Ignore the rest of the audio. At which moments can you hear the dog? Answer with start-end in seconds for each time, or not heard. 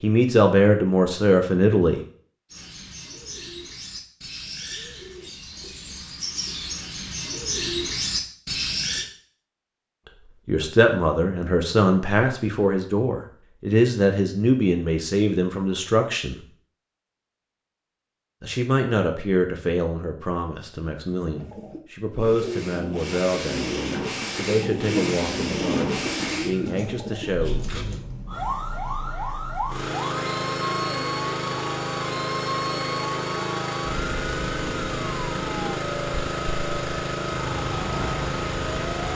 not heard.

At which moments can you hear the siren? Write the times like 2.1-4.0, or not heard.
28.2-39.1.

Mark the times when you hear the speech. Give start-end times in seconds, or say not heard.
0.0-2.0, 10.4-16.4, 18.4-27.8.